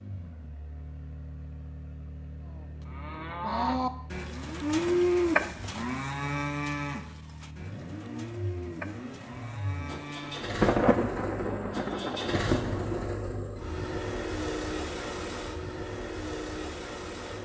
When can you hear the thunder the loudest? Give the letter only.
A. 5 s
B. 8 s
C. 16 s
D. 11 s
D.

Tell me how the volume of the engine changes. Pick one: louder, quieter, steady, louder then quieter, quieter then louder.
louder.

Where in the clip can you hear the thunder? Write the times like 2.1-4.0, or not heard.
10.6-13.1.